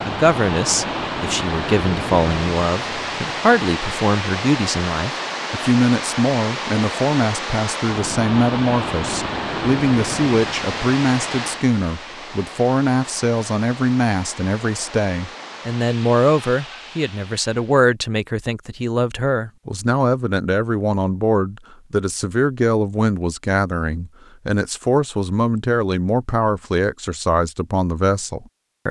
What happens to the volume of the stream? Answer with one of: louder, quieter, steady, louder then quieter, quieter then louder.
quieter.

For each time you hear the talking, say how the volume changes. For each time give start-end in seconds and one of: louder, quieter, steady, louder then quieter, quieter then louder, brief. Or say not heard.
0.0-28.8 steady.